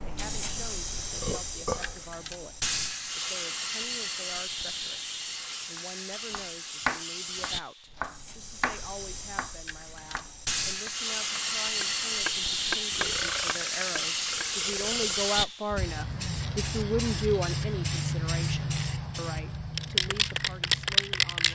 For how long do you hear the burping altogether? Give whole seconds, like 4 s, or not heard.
3 s.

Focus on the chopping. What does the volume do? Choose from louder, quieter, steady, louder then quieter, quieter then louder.
quieter then louder.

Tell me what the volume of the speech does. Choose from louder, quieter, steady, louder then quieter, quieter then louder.
louder.